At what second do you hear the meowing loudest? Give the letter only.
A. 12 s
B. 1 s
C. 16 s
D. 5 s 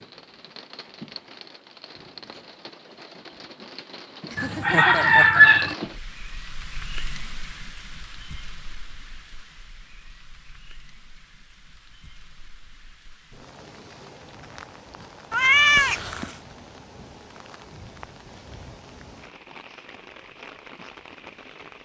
C.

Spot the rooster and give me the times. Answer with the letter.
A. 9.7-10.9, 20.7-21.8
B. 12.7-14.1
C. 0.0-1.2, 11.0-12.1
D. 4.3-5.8
D.